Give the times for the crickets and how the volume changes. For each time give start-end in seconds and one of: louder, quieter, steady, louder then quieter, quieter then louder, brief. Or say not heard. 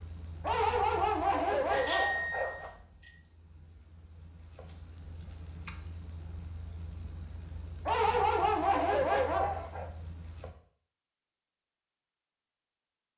0.0-10.6 quieter then louder.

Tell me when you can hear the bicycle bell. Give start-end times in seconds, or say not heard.
1.7-3.1.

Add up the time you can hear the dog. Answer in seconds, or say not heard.
4 s.